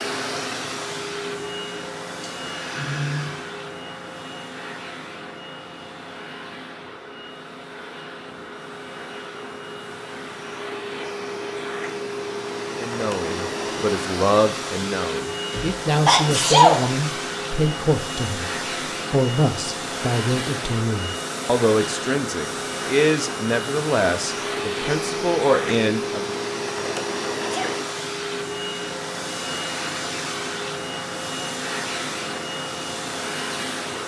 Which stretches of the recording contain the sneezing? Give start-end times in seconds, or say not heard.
2.5-3.4, 15.5-16.9, 27.4-27.9.